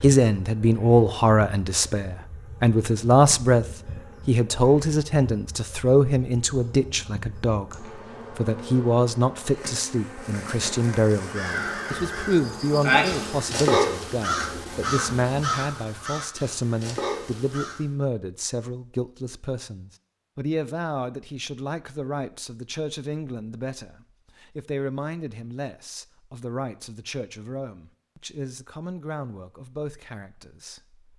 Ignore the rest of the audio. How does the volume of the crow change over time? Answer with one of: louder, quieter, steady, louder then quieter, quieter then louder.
louder then quieter.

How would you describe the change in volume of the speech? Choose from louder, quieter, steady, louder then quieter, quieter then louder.
quieter.